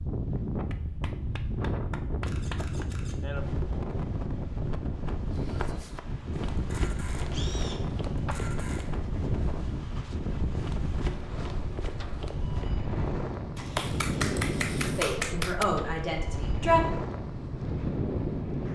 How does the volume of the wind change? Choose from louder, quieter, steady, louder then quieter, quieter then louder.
steady.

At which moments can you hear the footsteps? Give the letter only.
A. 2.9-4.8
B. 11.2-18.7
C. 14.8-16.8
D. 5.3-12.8
D.